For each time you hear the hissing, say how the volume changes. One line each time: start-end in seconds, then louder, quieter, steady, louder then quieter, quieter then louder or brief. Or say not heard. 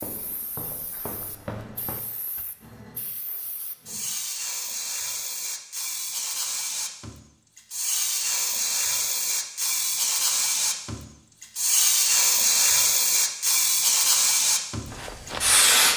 0.0-15.9 louder.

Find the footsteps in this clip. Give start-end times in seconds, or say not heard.
0.0-2.5, 14.8-15.8.